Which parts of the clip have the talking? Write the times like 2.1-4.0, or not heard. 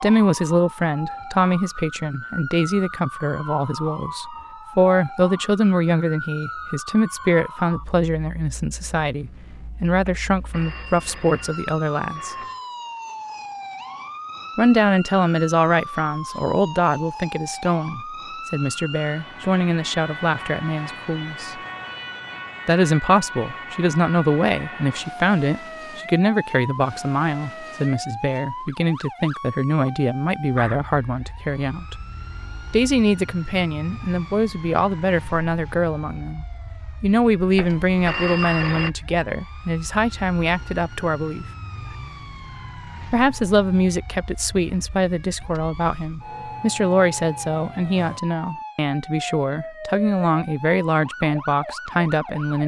0.0-12.3, 14.6-21.6, 22.6-31.9, 32.7-41.5, 43.1-52.6.